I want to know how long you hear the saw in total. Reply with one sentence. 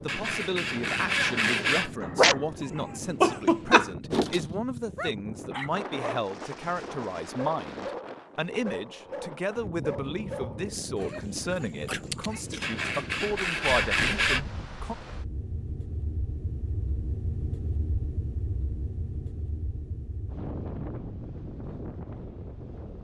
The saw can be heard for 4 seconds in total.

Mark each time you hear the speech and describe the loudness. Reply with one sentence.
You can hear the speech from 0.0 to 14.9 s, at a steady volume.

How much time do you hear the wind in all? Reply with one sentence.
The wind can be heard for 23 seconds in total.